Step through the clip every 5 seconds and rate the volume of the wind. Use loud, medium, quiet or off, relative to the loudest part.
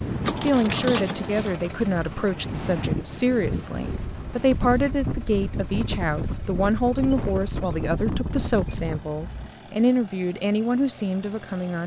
loud, loud, off.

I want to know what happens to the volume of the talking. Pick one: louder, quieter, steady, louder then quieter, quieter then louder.
steady.